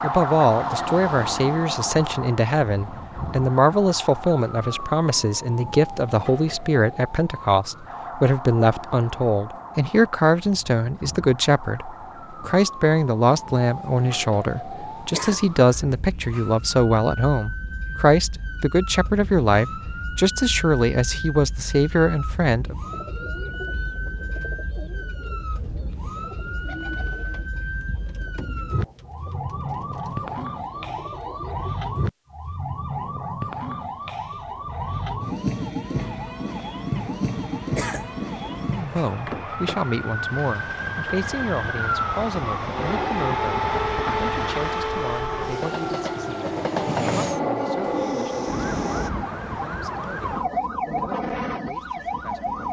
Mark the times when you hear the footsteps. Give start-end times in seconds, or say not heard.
not heard.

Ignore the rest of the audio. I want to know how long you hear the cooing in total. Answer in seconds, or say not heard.
9 s.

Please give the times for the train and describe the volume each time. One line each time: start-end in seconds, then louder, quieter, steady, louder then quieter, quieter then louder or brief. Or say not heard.
36.0-49.1 louder.